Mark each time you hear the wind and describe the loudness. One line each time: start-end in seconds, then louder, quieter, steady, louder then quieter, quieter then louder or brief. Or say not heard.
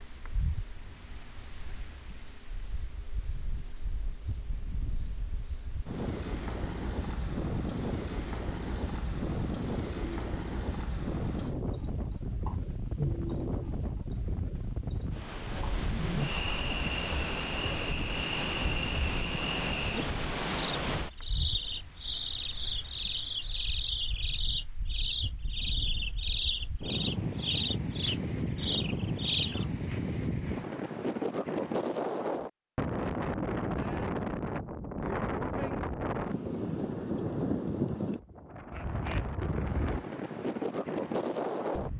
0.0-41.9 louder.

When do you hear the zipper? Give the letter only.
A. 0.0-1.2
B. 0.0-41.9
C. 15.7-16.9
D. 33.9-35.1
C.